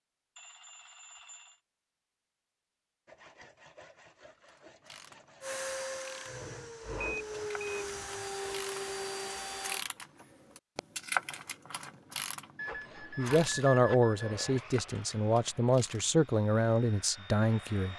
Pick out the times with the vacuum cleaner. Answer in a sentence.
You can hear the vacuum cleaner from 5.4 to 9.8 s.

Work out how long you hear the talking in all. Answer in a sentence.
The talking can be heard for 5 seconds in total.